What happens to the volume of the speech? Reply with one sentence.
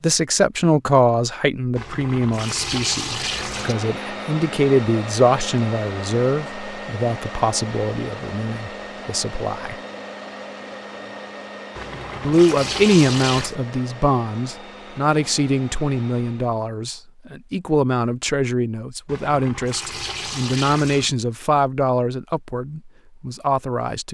The loudness of the speech stays about the same.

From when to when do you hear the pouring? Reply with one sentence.
The pouring can be heard from 1.8 to 3.8 s, from 11.8 to 13.6 s and from 19.1 to 21.1 s.